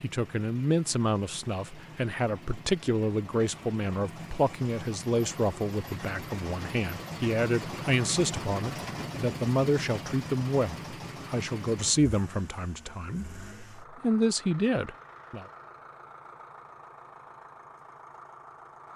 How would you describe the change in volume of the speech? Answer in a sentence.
The volume of the speech stays about the same.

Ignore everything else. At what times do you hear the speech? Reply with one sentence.
You can hear the speech from 0.0 to 15.4 s.